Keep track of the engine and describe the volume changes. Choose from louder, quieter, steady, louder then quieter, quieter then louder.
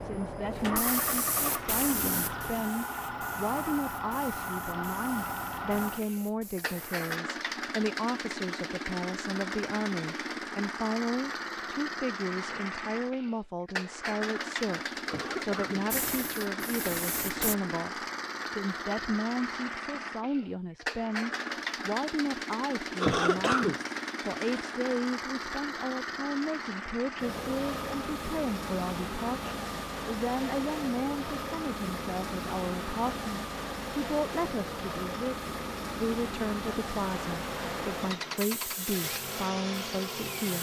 steady.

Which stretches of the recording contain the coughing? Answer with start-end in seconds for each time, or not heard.
15.1-15.9, 22.9-24.8.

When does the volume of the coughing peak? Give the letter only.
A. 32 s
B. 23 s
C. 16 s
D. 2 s
B.